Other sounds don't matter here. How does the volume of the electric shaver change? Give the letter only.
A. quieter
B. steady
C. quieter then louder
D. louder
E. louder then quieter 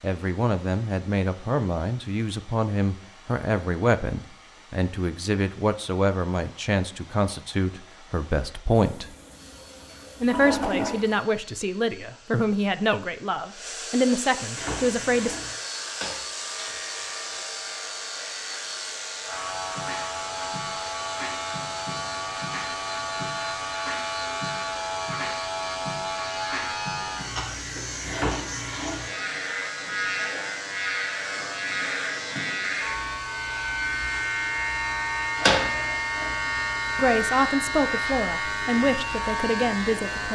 D.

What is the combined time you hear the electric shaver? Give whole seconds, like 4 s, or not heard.
26 s.